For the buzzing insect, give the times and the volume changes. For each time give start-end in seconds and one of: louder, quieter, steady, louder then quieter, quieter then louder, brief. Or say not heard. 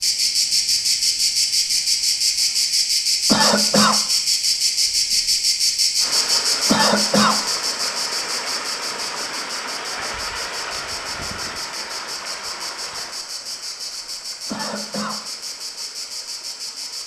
0.0-17.0 quieter.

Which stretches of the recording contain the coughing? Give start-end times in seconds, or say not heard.
3.2-4.0, 6.7-7.4, 14.4-15.2.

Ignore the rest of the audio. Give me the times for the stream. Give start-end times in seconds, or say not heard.
6.0-17.0.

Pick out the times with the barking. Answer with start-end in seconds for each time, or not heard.
not heard.